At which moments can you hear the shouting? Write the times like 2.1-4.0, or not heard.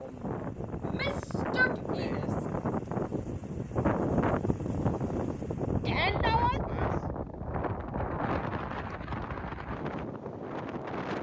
0.8-2.5, 5.8-6.6.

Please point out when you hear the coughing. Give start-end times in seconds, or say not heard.
not heard.